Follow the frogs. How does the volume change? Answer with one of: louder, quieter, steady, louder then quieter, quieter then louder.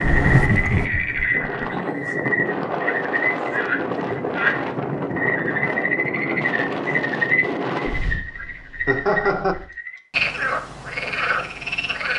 steady.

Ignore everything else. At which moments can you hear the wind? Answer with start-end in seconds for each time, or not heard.
0.0-9.7.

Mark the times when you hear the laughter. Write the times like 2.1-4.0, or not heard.
0.0-1.4, 8.8-9.6.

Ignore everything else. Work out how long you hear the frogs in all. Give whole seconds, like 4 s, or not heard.
12 s.